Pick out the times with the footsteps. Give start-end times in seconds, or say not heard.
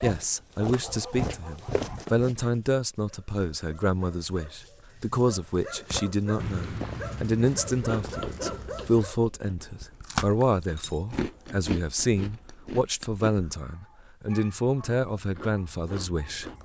0.0-2.4, 5.9-8.8.